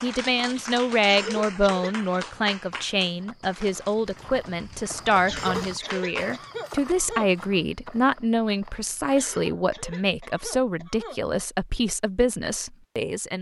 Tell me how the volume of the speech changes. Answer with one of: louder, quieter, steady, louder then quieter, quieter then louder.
steady.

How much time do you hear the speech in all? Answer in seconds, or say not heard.
13 s.